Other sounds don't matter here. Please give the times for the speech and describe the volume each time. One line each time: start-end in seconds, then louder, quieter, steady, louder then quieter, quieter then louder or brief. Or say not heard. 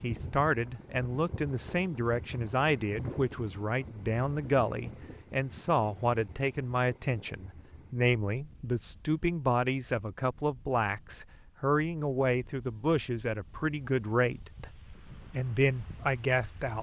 0.0-16.7 steady.